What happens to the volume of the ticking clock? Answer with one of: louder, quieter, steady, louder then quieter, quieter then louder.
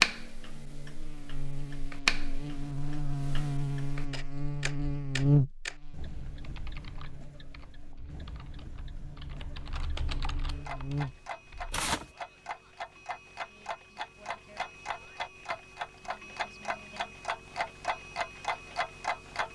quieter then louder.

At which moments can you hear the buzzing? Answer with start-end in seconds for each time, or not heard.
0.2-11.3.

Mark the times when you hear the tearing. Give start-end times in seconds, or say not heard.
11.7-12.1.